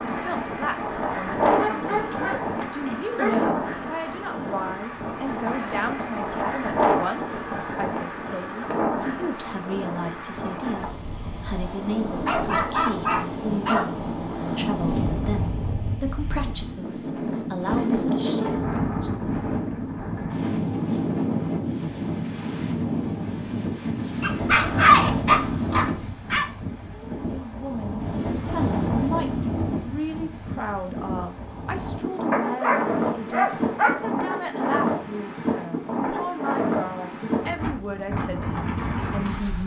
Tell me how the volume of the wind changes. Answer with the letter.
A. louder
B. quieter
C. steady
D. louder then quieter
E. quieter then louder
C.